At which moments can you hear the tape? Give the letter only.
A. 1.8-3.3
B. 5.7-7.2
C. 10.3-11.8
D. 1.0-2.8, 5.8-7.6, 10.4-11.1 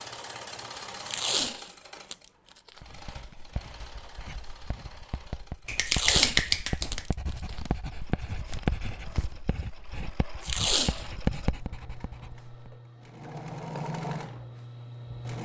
D.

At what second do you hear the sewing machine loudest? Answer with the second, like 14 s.
14 s.